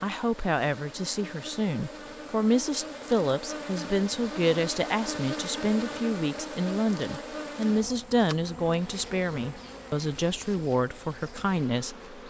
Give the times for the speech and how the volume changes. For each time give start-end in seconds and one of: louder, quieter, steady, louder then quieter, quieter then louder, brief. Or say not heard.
0.0-12.2 steady.